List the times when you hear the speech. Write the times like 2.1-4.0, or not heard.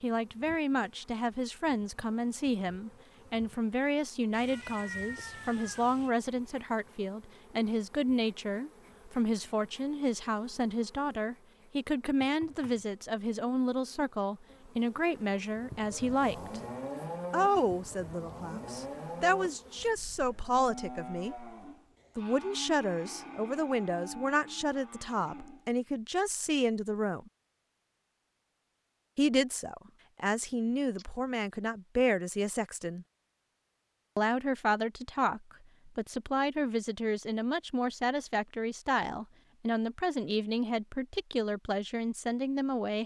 0.0-16.6, 17.3-21.4, 22.1-27.3, 29.1-33.0, 34.1-43.0.